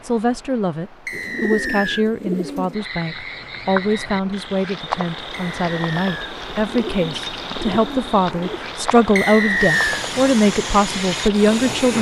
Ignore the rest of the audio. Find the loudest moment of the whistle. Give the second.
10 s.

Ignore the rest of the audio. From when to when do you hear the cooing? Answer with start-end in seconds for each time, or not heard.
1.1-2.9, 6.5-8.6.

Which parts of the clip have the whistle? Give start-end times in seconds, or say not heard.
1.1-2.0, 5.3-6.3, 9.2-10.1.